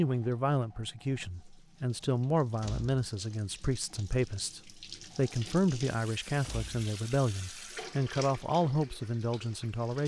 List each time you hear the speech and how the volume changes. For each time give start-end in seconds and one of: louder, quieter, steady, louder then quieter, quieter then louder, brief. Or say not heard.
0.0-10.0 steady.